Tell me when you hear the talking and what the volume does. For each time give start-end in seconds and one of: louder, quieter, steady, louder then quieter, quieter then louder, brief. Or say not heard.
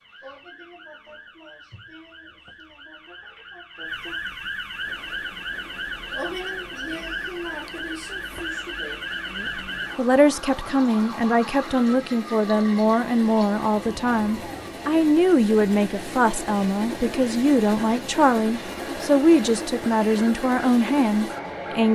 9.3-21.8 steady.